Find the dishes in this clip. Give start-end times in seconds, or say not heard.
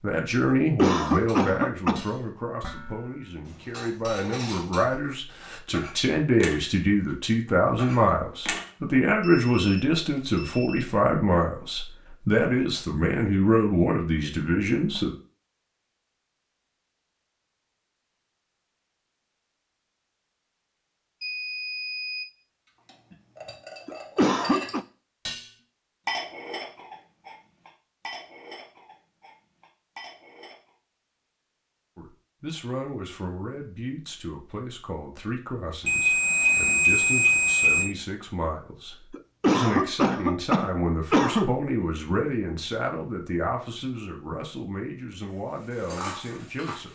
1.0-8.7, 22.9-30.8, 45.2-46.9.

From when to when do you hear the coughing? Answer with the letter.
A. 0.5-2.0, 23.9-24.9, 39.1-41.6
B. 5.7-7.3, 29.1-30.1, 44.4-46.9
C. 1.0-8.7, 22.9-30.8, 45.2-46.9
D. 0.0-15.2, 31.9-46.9
A.